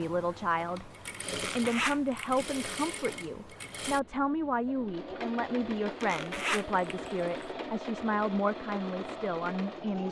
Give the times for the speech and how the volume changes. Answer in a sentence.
The speech can be heard from 0.0 to 10.0 s, at a steady volume.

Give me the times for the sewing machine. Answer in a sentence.
The sewing machine can be heard from 0.0 to 10.0 s.